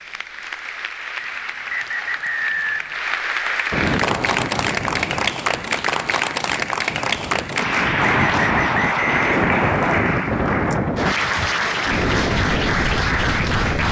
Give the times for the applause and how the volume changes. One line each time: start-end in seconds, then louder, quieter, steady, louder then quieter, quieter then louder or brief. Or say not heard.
0.0-13.8 louder.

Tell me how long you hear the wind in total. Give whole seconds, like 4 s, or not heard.
10 s.